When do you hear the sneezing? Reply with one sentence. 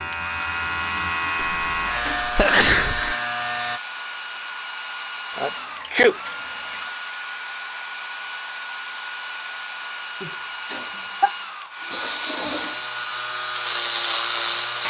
The sneezing can be heard from 1.4 to 3.1 s, from 5.3 to 6.2 s and from 10.2 to 11.3 s.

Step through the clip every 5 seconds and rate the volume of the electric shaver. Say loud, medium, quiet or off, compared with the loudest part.
loud, off, loud.